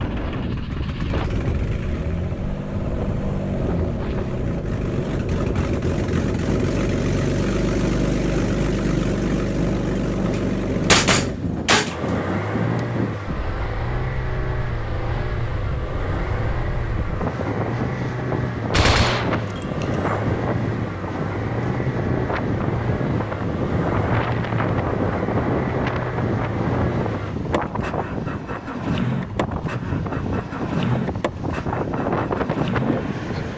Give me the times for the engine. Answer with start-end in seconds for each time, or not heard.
0.0-33.5.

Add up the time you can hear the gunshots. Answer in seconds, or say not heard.
3 s.